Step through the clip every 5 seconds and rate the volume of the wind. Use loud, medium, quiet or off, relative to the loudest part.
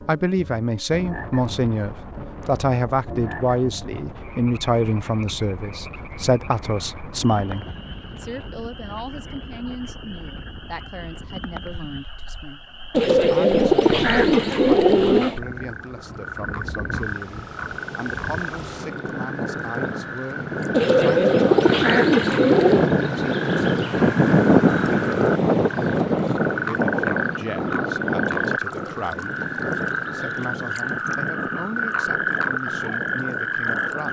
quiet, quiet, quiet, quiet, loud, loud, quiet.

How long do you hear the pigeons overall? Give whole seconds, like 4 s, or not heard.
5 s.